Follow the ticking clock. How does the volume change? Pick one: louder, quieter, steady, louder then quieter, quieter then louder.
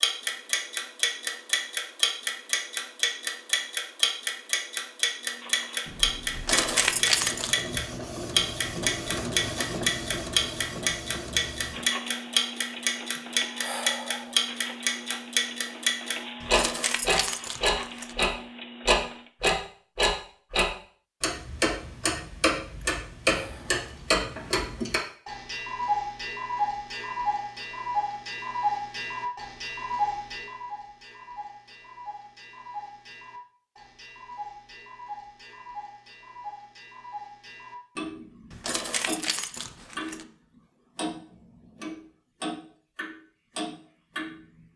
quieter.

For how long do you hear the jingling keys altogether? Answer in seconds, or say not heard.
5 s.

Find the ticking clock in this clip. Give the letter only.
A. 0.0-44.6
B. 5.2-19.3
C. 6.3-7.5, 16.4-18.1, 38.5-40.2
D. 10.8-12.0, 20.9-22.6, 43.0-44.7
A.